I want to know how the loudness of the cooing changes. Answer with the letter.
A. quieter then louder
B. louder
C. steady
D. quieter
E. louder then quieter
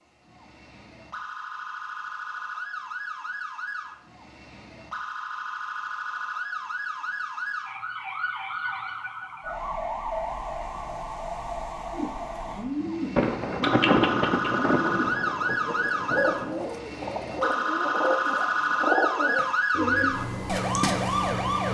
C.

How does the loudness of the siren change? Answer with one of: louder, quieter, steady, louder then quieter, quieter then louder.
louder.